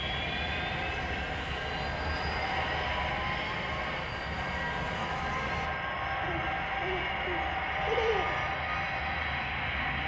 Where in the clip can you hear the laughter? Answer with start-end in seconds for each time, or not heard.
6.2-8.4.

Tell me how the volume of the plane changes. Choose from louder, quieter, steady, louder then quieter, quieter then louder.
steady.